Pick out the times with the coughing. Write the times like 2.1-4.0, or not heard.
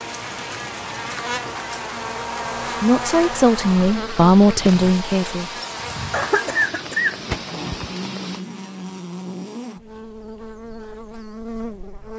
6.1-8.0.